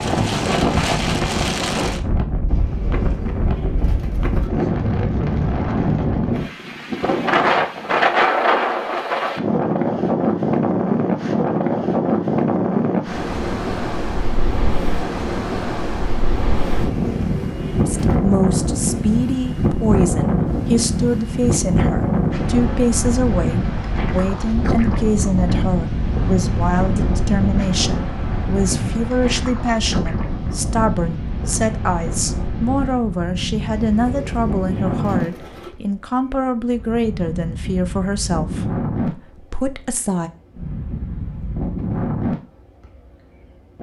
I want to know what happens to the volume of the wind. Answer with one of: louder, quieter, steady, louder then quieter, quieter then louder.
quieter.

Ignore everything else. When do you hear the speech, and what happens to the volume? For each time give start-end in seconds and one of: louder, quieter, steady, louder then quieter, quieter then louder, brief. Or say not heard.
17.9-40.3 steady.